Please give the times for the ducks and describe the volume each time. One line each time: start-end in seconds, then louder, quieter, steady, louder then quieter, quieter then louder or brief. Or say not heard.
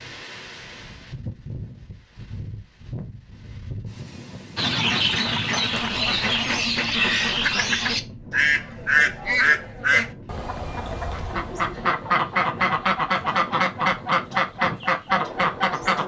4.5-16.0 steady.